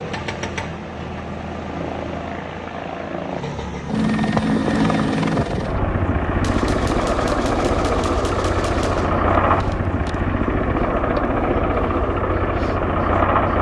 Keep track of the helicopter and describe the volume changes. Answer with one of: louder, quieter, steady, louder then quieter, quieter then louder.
louder.